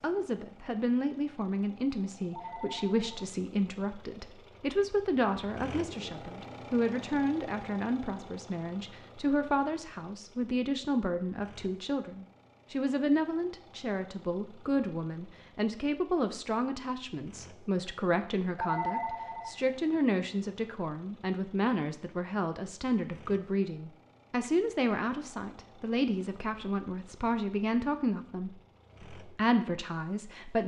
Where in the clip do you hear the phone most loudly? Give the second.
19 s.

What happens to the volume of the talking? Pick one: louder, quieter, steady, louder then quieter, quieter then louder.
steady.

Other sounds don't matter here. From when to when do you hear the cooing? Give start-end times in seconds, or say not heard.
not heard.